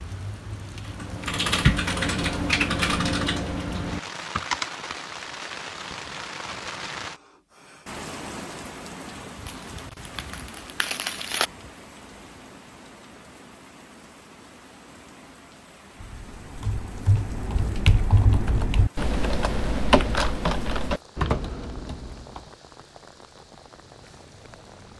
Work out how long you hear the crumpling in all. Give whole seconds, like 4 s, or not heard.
2 s.